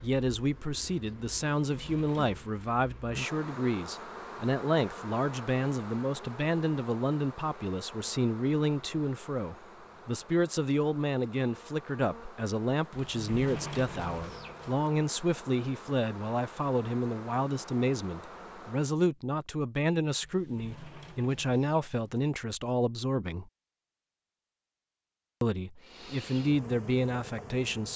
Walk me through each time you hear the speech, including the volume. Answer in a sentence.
You can hear the speech from 0.0 to 23.5 s, at a steady volume; and briefly from 25.4 to 27.9 s.